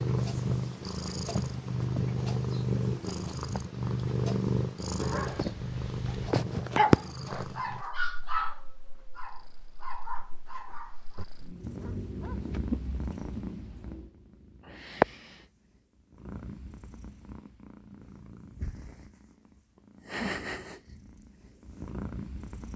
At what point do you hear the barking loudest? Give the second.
7 s.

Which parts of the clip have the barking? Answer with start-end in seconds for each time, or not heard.
5.0-12.6.